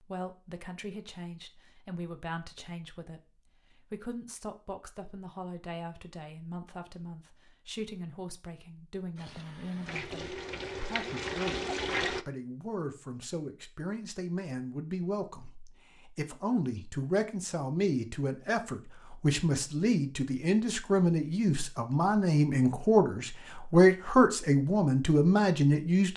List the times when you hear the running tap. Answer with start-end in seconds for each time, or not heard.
9.2-12.2.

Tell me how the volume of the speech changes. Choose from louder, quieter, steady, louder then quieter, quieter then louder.
louder.